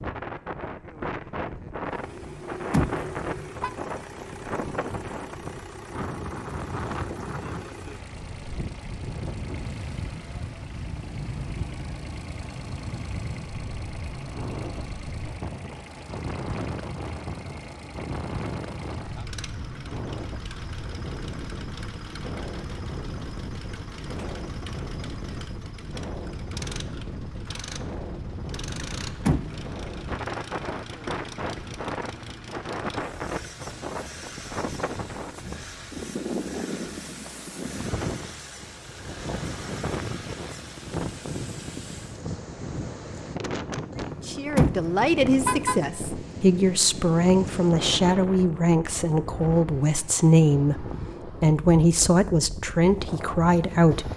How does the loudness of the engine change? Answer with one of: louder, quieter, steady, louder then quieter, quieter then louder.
steady.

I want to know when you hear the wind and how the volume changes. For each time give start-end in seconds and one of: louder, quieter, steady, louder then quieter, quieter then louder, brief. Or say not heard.
0.0-54.1 steady.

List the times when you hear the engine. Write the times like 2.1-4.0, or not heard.
1.9-42.2.